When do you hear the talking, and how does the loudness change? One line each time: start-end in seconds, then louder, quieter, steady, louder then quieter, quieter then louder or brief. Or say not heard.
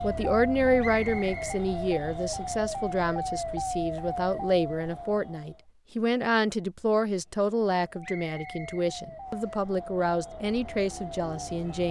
0.0-11.8 steady.